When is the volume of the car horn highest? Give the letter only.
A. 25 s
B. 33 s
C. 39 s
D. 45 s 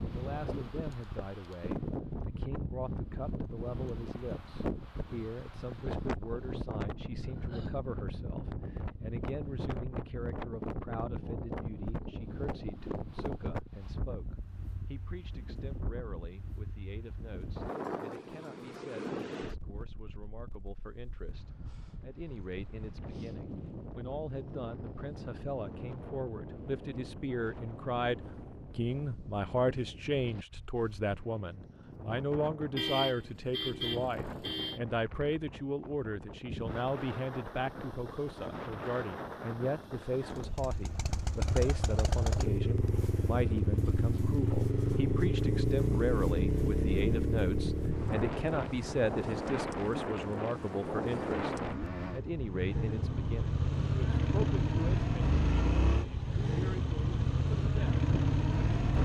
B.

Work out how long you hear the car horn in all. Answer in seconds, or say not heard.
2 s.